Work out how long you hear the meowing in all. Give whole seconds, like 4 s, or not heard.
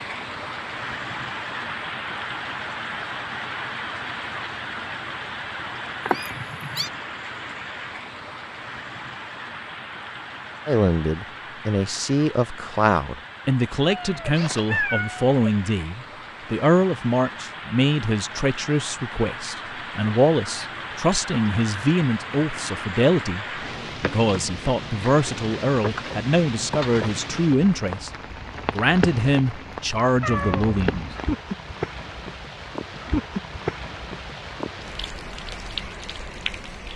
3 s.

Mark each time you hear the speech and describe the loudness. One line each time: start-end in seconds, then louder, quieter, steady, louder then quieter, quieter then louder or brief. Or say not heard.
10.7-28.1 steady
28.7-31.1 brief.